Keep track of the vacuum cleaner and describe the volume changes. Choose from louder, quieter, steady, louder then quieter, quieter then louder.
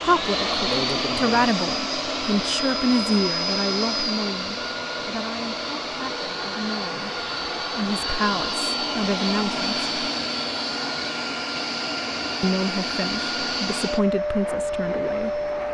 steady.